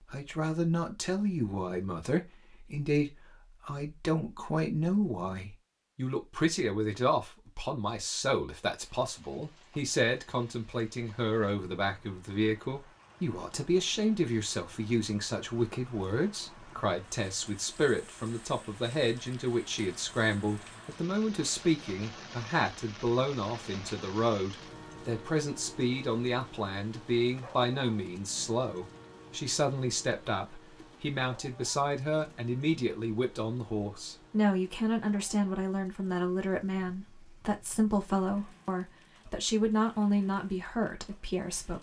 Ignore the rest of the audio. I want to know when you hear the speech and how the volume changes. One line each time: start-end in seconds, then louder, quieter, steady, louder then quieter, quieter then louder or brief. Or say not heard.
0.0-41.7 steady.